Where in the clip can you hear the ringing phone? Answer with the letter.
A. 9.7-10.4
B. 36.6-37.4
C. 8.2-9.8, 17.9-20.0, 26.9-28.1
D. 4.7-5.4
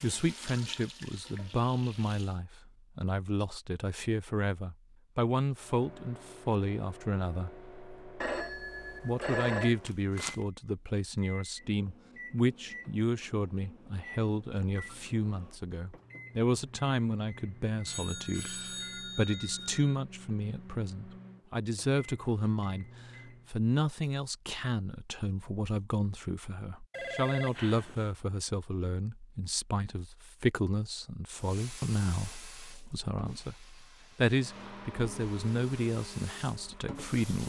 C.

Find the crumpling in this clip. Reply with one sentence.
You can hear the crumpling from 9.7 to 10.4 s.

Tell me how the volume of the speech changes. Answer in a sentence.
The loudness of the speech stays about the same.